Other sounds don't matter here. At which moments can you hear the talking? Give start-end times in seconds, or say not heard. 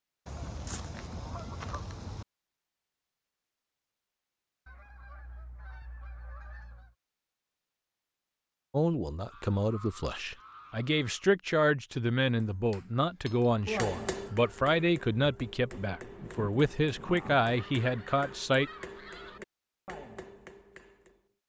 8.7-18.7.